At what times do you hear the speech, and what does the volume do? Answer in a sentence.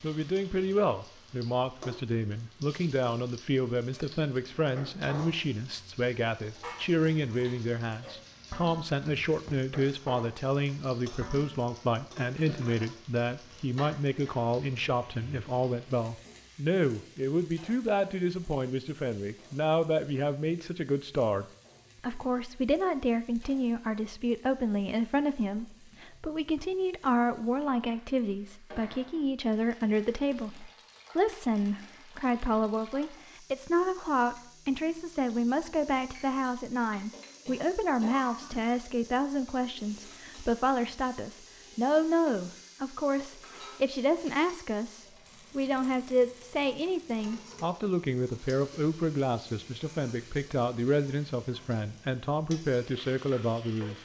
You can hear the speech from 0.0 to 54.0 s, at a steady volume.